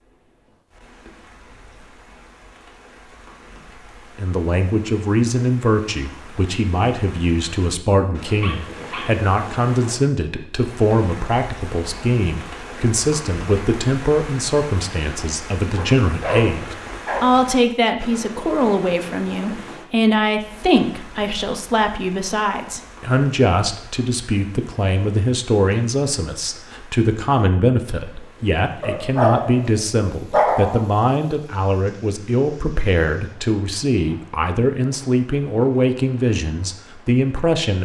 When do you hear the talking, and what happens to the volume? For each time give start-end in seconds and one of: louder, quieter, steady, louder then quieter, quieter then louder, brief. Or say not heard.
4.2-37.8 steady.